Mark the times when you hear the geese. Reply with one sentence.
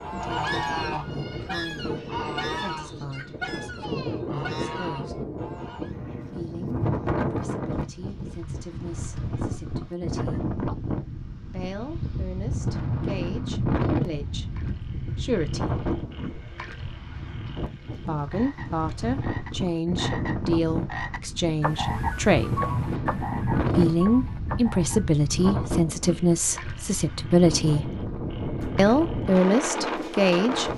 You can hear the geese from 0.0 to 6.0 s.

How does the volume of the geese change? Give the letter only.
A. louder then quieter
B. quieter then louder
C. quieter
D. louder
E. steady
C.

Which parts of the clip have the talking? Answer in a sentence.
The talking can be heard from 0.0 to 5.2 s, from 6.2 to 10.4 s, from 11.4 to 15.8 s, from 17.9 to 22.6 s, from 23.7 to 27.9 s and from 28.8 to 30.7 s.